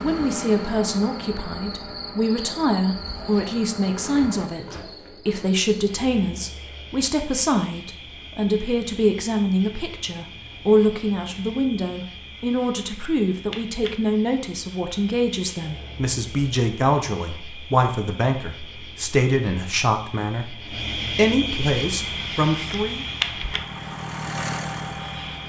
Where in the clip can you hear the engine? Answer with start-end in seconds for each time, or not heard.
0.0-4.5, 21.9-25.4.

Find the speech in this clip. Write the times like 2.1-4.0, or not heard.
0.0-23.1.